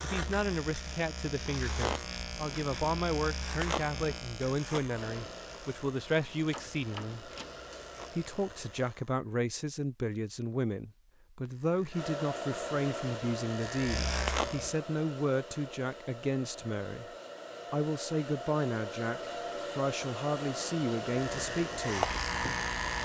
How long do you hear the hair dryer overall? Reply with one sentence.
You can hear the hair dryer for 15 seconds altogether.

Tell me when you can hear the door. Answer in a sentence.
The door can be heard from 6.5 to 7.6 s.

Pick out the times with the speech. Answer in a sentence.
You can hear the speech from 0.0 to 7.3 s, from 8.1 to 17.1 s and from 17.7 to 22.1 s.